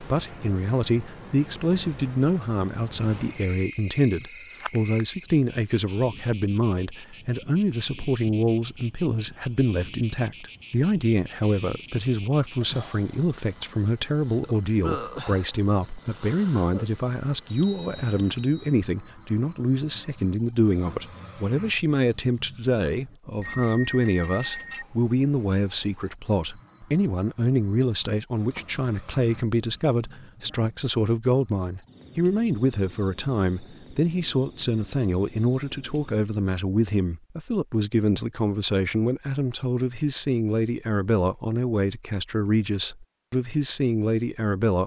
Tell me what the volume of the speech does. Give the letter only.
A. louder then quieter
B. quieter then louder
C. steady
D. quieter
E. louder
C.